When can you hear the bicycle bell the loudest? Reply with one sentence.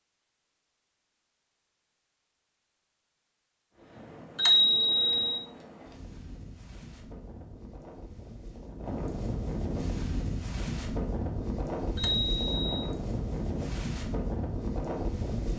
The loudest moment of the bicycle bell is at 5 seconds.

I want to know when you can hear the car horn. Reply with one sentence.
The car horn can't be heard in this clip.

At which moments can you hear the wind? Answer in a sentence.
You can hear the wind from 3.7 to 15.5 s.